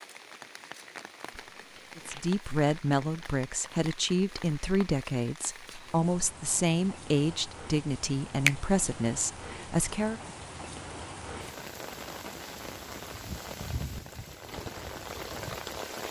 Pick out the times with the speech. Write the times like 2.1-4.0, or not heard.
1.9-10.2.